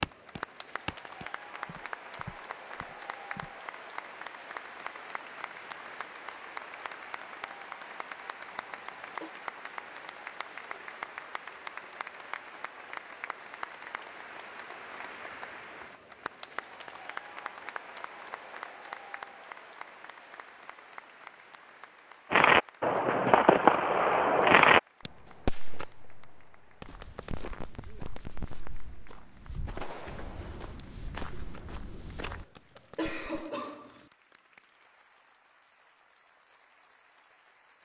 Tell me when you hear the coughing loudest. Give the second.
33 s.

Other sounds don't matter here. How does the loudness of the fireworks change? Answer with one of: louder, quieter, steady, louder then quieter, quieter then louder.
quieter.